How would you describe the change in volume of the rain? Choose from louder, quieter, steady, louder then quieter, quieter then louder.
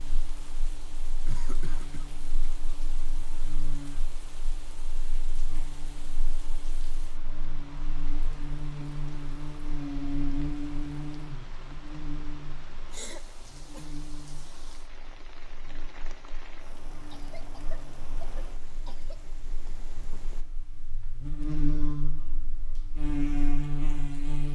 steady.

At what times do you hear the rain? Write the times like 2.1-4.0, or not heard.
0.0-20.4.